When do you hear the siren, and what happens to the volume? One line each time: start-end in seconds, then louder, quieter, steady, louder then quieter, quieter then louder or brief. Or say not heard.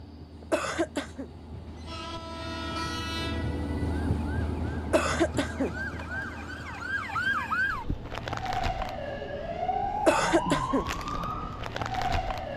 2.2-12.5 louder.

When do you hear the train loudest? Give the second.
4 s.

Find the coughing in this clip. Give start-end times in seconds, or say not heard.
0.5-1.2, 4.9-5.7, 9.9-10.8.